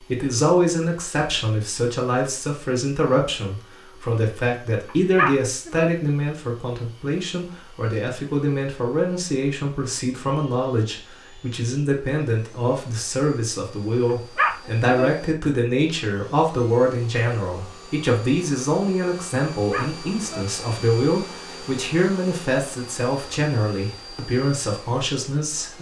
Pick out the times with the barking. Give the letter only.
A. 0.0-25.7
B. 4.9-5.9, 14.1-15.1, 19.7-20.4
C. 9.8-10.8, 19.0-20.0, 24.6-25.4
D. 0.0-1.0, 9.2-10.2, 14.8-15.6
B.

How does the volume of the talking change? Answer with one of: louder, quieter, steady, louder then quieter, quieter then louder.
steady.